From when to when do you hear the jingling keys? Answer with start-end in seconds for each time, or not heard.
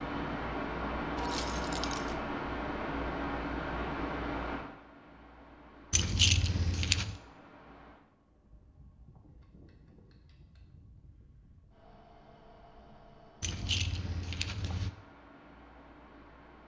1.1-2.2, 5.9-7.2, 13.4-14.9.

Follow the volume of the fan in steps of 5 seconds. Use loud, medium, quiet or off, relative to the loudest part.
loud, quiet, quiet, quiet.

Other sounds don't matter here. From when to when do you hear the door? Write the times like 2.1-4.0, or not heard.
not heard.